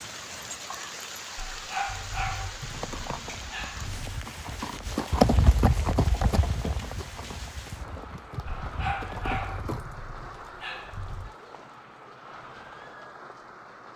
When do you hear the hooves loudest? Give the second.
5 s.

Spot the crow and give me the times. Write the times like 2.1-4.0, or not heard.
not heard.